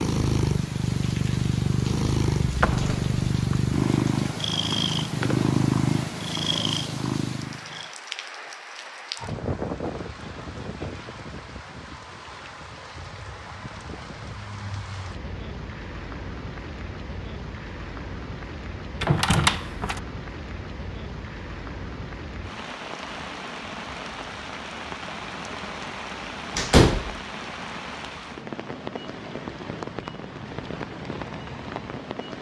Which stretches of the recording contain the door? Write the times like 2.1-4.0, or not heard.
2.4-3.6, 19.0-20.0, 26.6-27.1.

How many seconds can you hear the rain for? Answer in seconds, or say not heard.
32 s.